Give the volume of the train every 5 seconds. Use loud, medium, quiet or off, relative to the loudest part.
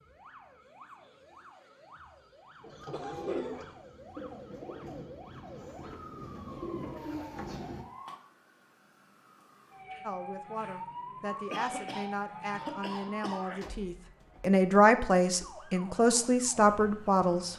medium, loud, off, off.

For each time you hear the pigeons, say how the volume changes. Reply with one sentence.
The pigeons can be heard from 2.6 to 7.7 s, getting quieter then louder.